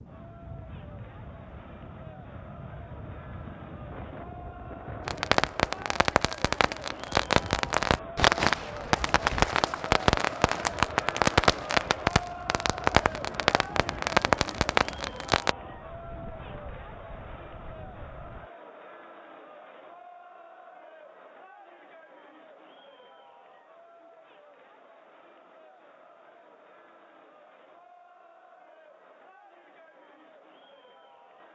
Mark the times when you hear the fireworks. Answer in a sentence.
You can hear the fireworks from 5.0 to 15.6 s.